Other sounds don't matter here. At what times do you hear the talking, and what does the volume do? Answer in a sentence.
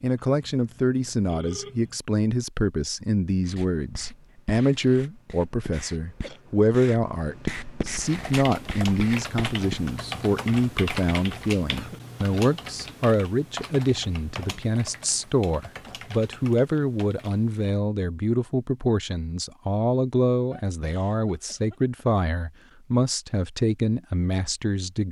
You can hear the talking from 0.0 to 25.0 s, at a steady volume.